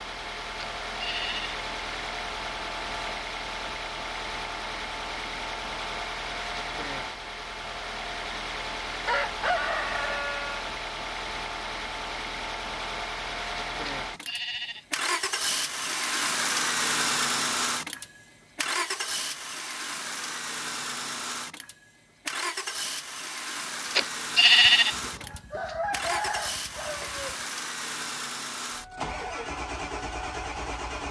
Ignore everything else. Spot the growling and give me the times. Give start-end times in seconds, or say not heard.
not heard.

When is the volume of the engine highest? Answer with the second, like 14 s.
17 s.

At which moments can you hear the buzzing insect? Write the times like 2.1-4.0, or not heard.
not heard.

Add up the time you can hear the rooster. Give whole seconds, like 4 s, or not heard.
4 s.